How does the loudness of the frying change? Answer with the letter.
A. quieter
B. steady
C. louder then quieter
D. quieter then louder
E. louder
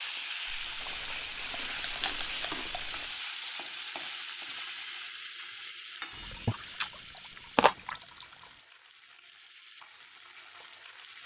A.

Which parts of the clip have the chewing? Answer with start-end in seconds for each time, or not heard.
0.5-3.0, 6.5-8.0.